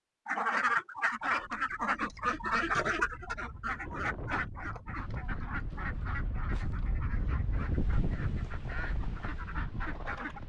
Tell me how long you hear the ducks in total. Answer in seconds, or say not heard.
10 s.